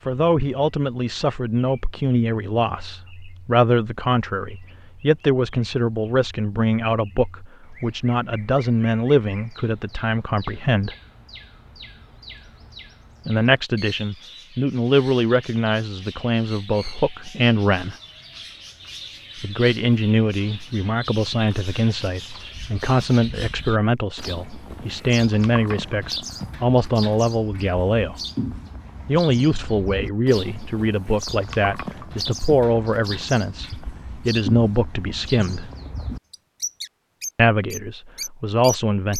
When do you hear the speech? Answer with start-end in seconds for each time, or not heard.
0.1-10.9, 13.2-17.9, 19.4-28.1, 29.1-35.7, 37.4-39.1.